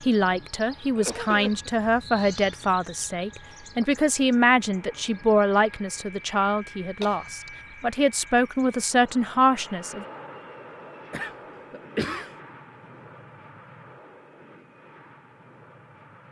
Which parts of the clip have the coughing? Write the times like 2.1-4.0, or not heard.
0.9-1.7, 7.0-7.8, 11.1-12.3.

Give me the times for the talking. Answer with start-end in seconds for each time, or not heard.
0.1-10.1.